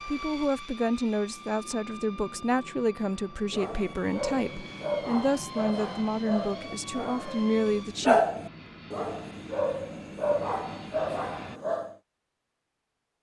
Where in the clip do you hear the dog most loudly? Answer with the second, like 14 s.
8 s.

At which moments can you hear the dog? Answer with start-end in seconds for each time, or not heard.
3.5-11.9.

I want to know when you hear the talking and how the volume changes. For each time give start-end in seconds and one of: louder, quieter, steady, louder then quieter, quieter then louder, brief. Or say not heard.
0.1-8.2 steady.